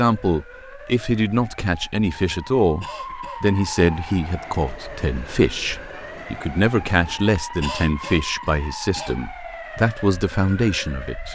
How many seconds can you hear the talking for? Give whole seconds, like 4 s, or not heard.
11 s.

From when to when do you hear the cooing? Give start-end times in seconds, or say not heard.
not heard.